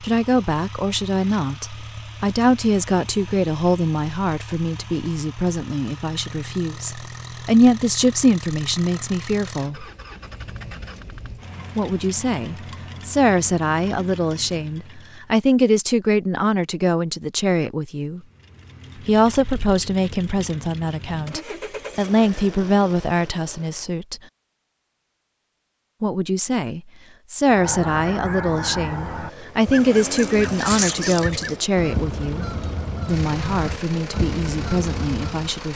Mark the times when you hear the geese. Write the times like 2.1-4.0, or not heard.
27.4-35.5.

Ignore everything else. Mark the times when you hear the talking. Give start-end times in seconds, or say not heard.
0.0-9.8, 11.8-18.2, 19.1-24.2, 26.0-32.5, 33.0-35.7.